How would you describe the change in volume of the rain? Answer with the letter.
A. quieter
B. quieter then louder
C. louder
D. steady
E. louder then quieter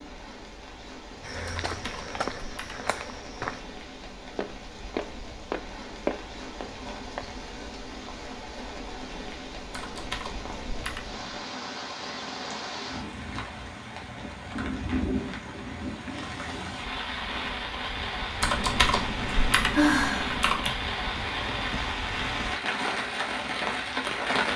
C.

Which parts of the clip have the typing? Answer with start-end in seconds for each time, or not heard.
1.4-3.0, 9.7-11.2, 18.4-20.7.